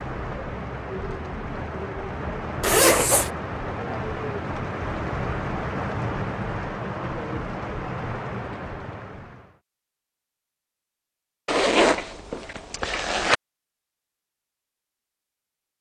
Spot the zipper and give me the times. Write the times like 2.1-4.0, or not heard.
2.6-3.3, 11.4-13.3.